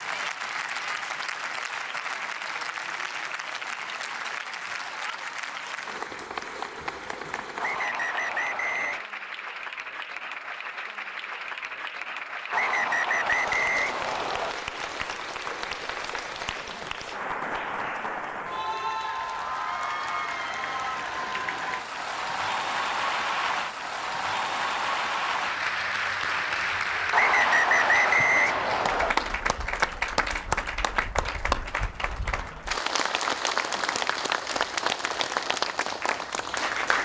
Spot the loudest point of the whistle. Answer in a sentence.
The volume of the whistle peaks at 28 seconds.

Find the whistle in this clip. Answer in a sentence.
You can hear the whistle from 7.6 to 9.1 s, from 12.5 to 14.6 s and from 27.1 to 29.1 s.